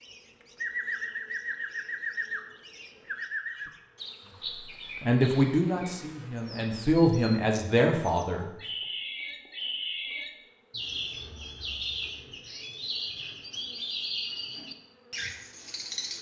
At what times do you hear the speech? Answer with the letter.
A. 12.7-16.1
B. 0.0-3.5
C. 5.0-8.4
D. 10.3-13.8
C.